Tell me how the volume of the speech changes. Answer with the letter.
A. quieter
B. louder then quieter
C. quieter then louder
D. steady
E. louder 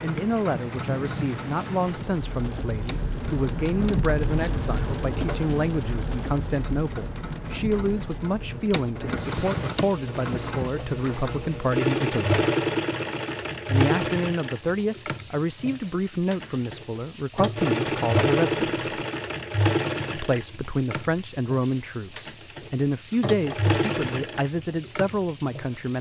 D.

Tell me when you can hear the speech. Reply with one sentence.
You can hear the speech from 0.0 to 12.4 s, from 13.7 to 18.9 s and from 20.1 to 25.9 s.